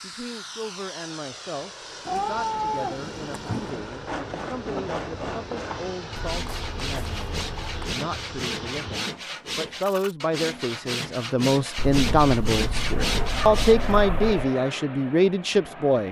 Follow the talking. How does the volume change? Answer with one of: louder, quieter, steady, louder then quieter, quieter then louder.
louder.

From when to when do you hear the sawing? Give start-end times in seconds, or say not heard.
3.6-14.0.